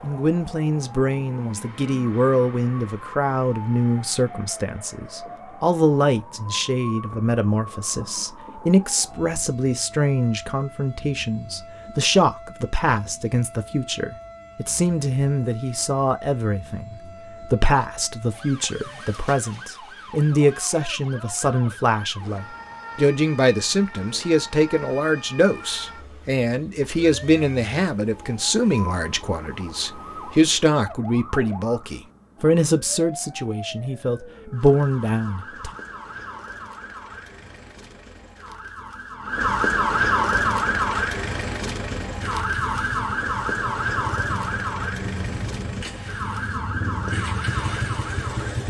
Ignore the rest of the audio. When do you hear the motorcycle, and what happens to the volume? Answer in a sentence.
You can hear the motorcycle from 40.5 to 48.6 s, getting louder.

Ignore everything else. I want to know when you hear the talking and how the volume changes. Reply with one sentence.
The talking can be heard from 0.0 to 35.7 s, at a steady volume.